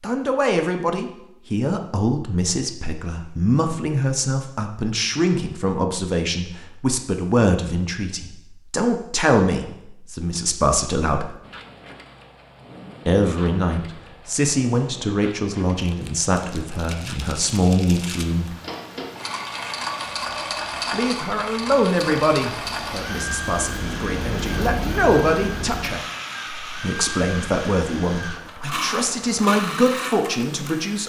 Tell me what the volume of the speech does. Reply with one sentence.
The volume of the speech stays about the same.